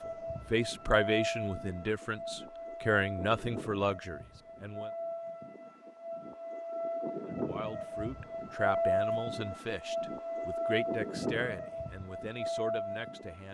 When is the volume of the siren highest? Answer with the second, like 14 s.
9 s.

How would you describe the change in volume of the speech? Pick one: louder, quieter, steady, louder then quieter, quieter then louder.
quieter.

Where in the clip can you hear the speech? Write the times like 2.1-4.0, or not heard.
0.1-4.9, 7.3-13.4.